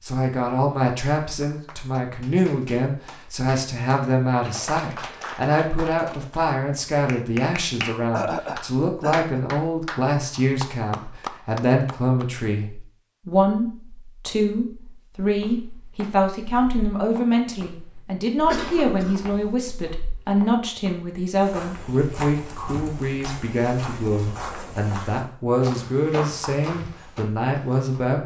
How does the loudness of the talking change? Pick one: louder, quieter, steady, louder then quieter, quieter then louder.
steady.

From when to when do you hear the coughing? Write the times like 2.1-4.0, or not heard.
8.1-9.4, 18.4-19.6.